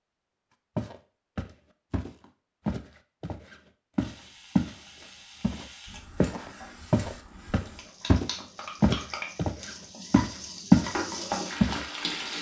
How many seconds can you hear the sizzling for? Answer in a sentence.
You can hear the sizzling for 8 seconds altogether.